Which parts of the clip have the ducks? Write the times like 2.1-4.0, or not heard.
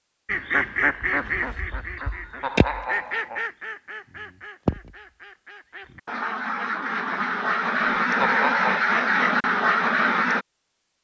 0.2-10.4.